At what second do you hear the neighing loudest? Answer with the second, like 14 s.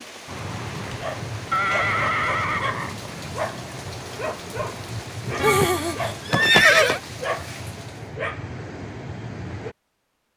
7 s.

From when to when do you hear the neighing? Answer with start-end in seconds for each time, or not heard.
0.7-3.0, 5.4-7.0.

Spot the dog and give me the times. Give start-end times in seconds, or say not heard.
0.2-9.8.